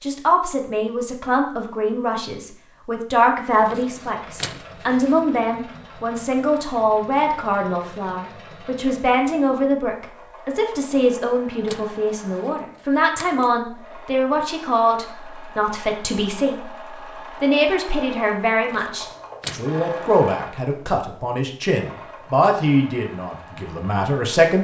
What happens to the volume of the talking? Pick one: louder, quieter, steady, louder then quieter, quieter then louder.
steady.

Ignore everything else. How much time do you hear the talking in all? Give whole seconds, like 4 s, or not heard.
24 s.